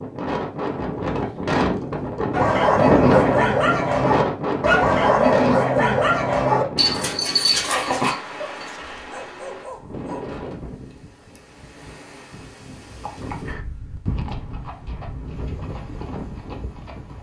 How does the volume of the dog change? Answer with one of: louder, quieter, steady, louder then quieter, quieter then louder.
quieter.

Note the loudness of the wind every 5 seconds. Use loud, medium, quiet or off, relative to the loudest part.
loud, medium, quiet, quiet.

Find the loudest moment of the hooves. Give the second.
14 s.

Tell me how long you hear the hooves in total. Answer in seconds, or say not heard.
4 s.